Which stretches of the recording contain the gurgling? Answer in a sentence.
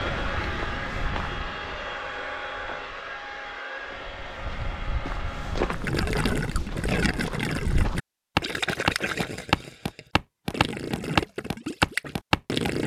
You can hear the gurgling from 5.7 to 12.8 s.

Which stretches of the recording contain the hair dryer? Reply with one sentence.
The hair dryer can be heard from 0.0 to 6.0 s.